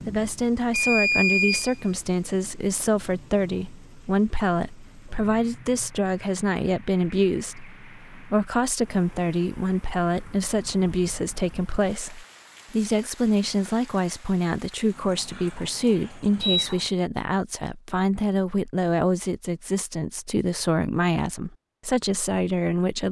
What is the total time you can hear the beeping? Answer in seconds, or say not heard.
3 s.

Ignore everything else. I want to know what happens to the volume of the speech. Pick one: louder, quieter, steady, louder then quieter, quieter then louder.
steady.